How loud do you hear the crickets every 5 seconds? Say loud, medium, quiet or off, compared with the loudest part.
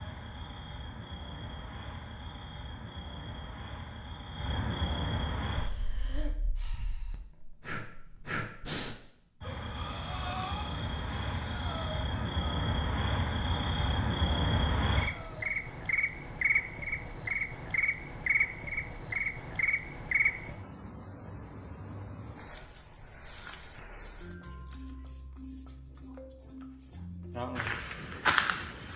quiet, quiet, medium, loud, loud, loud.